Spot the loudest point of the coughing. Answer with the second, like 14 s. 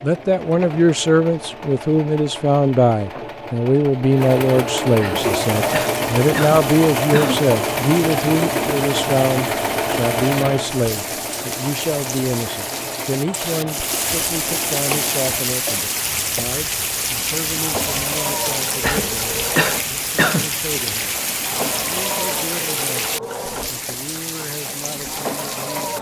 20 s.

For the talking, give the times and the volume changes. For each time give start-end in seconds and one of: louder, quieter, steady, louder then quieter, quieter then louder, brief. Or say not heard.
0.0-25.9 quieter.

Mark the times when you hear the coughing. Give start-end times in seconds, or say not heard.
5.0-7.5, 18.8-20.5.